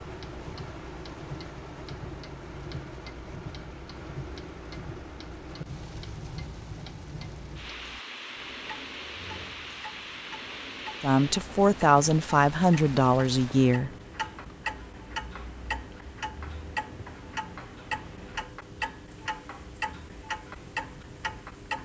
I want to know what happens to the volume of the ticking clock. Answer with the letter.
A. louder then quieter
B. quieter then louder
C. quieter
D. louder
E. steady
D.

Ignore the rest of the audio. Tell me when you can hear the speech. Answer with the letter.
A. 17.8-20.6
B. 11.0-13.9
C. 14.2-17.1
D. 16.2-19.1
B.